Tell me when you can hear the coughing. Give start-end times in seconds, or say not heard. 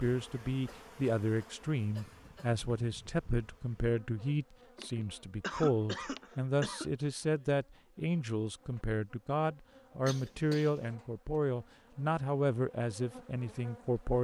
0.7-2.6, 4.8-6.9, 10.1-10.9.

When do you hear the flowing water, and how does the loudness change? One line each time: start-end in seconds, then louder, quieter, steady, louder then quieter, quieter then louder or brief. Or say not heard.
not heard.